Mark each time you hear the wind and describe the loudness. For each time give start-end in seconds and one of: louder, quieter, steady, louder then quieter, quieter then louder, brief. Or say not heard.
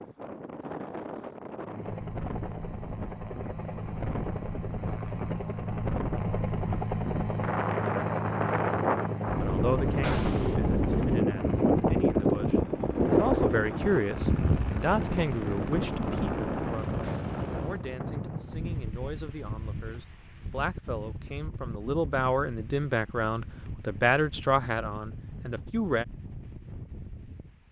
0.0-27.6 louder then quieter.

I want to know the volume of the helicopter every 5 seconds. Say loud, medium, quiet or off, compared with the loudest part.
medium, loud, medium, medium, off, off.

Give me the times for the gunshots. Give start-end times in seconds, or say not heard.
10.0-10.6, 17.0-17.4.